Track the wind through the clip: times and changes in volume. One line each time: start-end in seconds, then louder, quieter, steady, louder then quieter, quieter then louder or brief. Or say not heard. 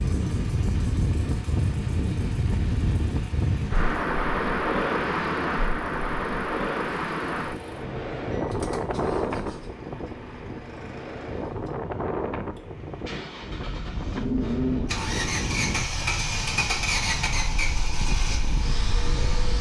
0.0-19.5 quieter.